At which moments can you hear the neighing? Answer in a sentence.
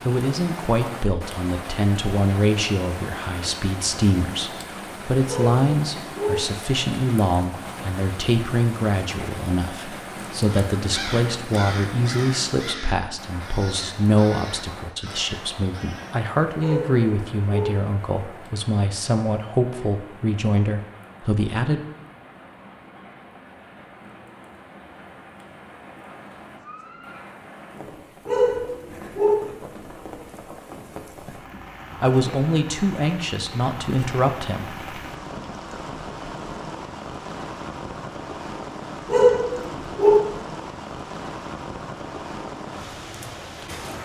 You can hear the neighing from 26.1 to 27.3 s.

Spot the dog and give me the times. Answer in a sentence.
The dog can be heard from 5.2 to 6.3 s, from 16.6 to 17.7 s, from 28.2 to 29.4 s and from 39.0 to 40.2 s.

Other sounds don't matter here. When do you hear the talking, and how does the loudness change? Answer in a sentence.
The talking can be heard from 0.1 to 21.8 s, at a steady volume; and briefly from 32.0 to 34.9 s.